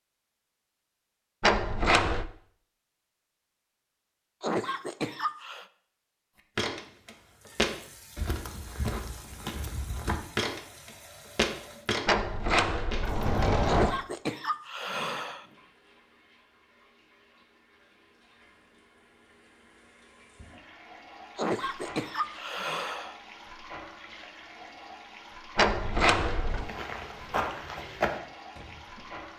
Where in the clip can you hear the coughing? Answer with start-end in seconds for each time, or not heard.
4.4-5.7, 13.7-15.4, 21.4-23.1.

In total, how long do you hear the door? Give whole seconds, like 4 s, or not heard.
4 s.